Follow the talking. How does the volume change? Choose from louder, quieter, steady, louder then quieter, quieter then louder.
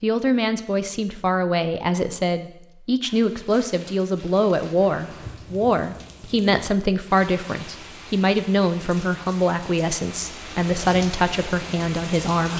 steady.